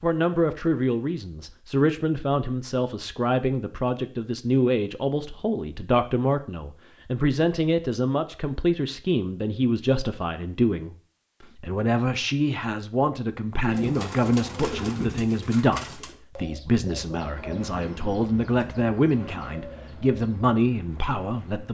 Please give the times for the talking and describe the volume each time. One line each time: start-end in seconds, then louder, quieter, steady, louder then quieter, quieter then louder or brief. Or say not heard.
0.0-21.7 steady.